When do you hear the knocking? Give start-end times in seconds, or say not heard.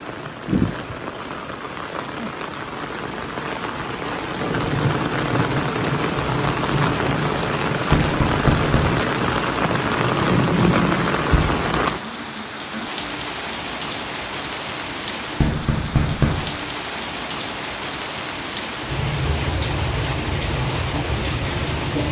7.9-9.0, 15.3-16.4.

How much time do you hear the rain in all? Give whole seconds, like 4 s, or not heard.
22 s.